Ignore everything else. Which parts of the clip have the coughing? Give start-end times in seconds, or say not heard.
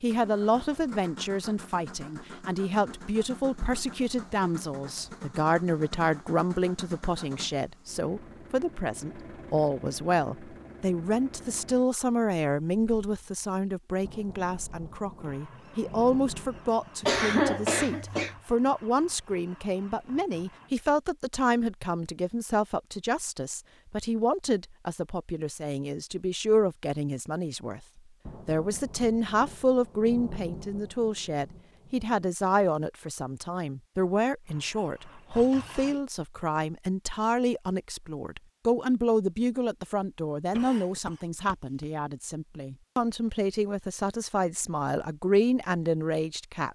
17.0-18.4, 40.5-41.9.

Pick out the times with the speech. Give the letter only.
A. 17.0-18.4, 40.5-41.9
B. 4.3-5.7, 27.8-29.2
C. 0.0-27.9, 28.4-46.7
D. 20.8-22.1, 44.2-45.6
C.